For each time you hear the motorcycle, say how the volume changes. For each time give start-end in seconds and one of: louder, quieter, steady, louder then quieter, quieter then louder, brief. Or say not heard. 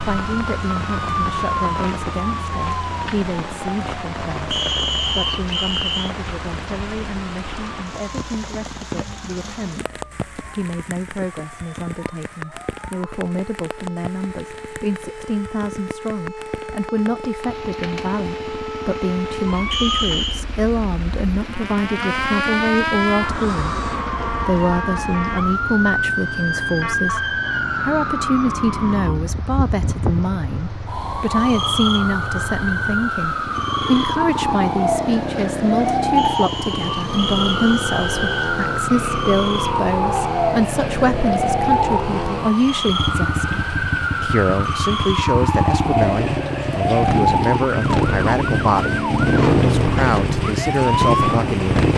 17.5-51.9 louder.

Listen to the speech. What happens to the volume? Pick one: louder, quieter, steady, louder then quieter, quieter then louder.
louder.